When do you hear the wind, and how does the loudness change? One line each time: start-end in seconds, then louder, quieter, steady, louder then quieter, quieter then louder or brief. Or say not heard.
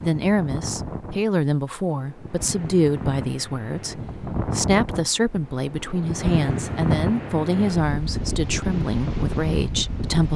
0.0-10.3 louder.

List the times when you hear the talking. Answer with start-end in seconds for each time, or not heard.
0.0-10.3.